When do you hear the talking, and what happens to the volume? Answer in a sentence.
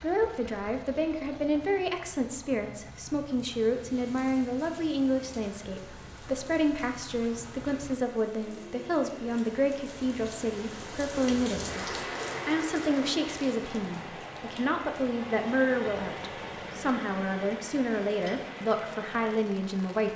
The talking can be heard from 0.0 to 20.1 s, at a steady volume.